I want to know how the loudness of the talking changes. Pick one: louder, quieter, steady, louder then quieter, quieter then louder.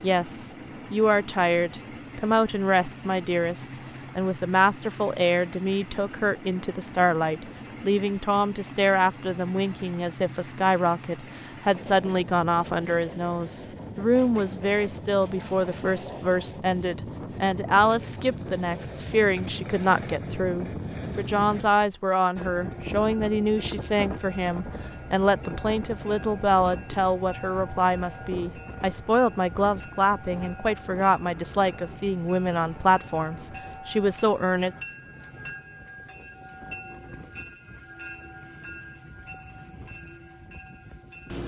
steady.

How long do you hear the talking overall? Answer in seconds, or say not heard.
35 s.